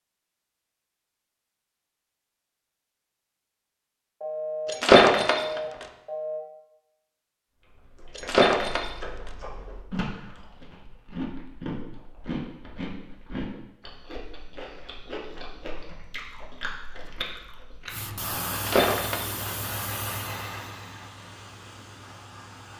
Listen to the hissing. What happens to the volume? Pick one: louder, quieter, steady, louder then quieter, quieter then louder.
quieter.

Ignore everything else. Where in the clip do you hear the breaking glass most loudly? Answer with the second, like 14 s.
5 s.